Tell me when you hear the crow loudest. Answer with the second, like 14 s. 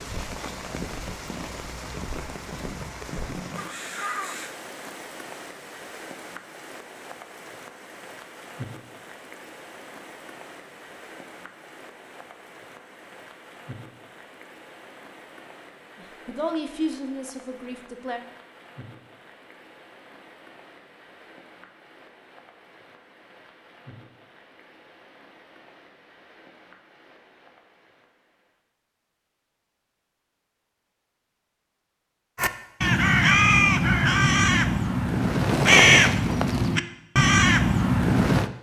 36 s.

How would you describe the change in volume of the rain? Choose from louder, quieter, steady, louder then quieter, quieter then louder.
quieter.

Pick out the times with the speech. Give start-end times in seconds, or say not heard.
15.9-18.2.